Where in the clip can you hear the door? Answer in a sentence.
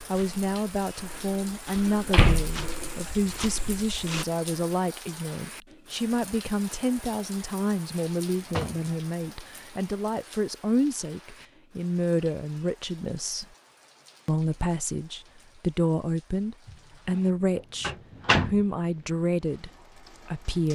You can hear the door from 1.9 to 2.6 s, from 7.9 to 8.9 s and from 17.8 to 18.6 s.